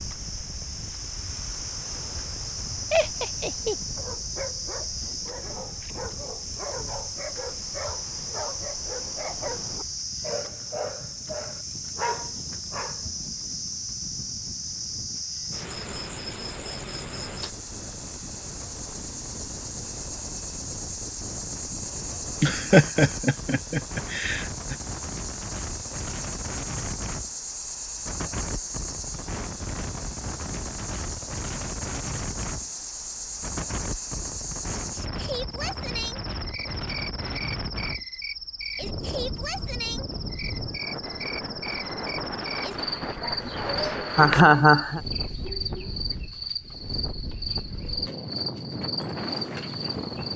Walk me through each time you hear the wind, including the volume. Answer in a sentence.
You can hear the wind from 0.0 to 50.3 s, getting louder.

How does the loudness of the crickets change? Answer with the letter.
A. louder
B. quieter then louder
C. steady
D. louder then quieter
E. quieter
C.